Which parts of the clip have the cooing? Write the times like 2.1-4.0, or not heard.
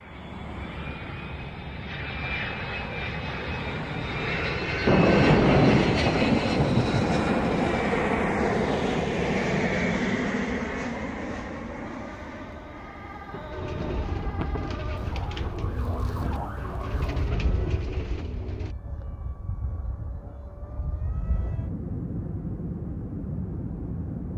13.5-18.8.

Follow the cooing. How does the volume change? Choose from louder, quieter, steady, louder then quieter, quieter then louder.
steady.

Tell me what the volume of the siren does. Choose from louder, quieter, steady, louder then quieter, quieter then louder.
louder.